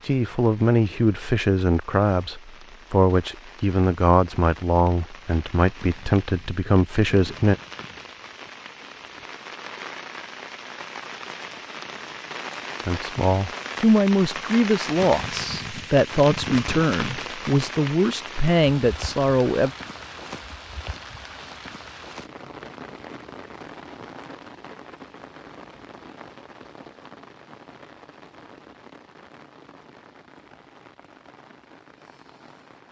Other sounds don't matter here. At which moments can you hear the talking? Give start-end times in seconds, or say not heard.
0.0-7.6, 12.8-19.7.